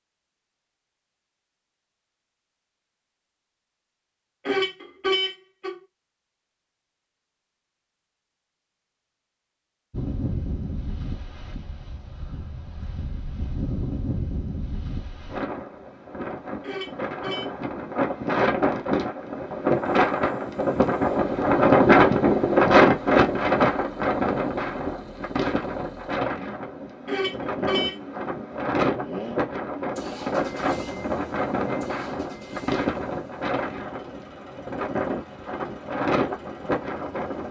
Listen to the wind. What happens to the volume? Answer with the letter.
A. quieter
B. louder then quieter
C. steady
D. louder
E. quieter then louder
B.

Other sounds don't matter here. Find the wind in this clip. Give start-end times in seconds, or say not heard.
9.9-37.4.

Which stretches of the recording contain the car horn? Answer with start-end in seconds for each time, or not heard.
4.5-5.8, 16.6-17.4, 27.1-27.9.